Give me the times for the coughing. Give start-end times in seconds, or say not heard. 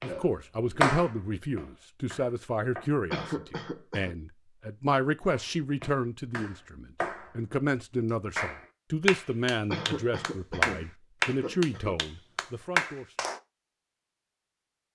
3.1-4.2, 9.7-12.0.